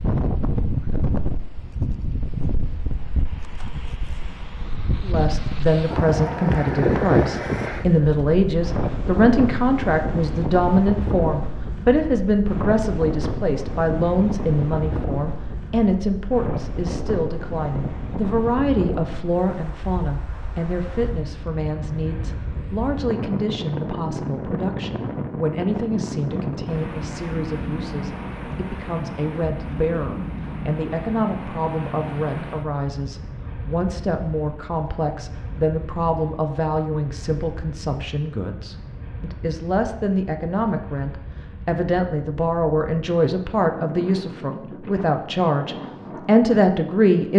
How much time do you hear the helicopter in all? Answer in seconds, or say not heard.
not heard.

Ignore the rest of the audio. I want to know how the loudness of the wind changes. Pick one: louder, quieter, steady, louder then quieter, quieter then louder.
quieter.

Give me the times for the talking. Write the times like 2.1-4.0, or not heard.
5.0-47.3.